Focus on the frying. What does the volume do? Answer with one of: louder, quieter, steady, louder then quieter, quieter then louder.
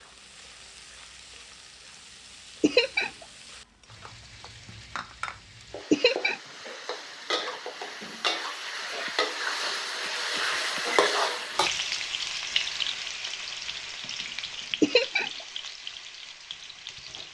louder then quieter.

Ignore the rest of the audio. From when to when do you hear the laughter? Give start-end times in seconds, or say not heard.
2.6-3.1, 5.9-6.4, 14.8-15.3.